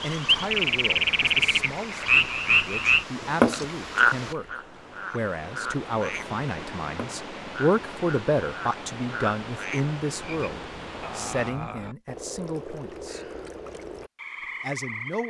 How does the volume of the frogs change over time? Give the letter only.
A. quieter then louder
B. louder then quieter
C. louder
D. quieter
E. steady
D.